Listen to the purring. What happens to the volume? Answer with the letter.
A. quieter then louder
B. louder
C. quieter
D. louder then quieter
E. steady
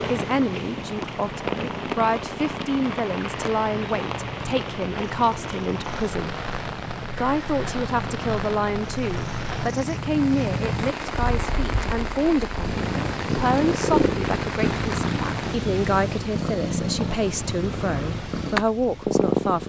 B.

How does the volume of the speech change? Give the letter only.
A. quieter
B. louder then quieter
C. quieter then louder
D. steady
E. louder
D.